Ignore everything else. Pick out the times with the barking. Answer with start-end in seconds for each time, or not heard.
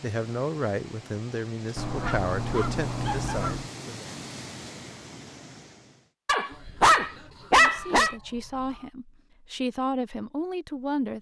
1.9-3.4, 6.2-8.2.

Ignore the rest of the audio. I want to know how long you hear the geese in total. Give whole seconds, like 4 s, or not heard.
4 s.